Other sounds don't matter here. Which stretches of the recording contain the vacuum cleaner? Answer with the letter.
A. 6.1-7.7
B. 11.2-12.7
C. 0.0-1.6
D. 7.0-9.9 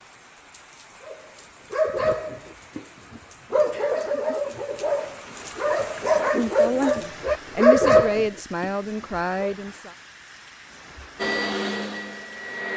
B.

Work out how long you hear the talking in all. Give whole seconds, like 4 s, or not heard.
3 s.